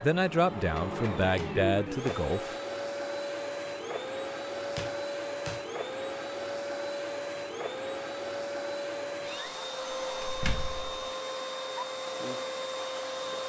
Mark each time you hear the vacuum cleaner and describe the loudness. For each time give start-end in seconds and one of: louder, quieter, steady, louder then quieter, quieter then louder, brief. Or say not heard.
0.0-13.4 steady.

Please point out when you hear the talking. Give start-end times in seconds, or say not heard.
0.0-2.5.